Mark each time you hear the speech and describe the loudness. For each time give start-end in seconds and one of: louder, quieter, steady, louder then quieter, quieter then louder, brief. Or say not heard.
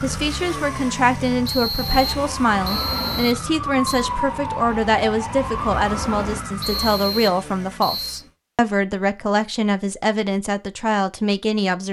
0.0-11.8 steady.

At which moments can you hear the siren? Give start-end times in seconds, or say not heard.
0.0-6.8.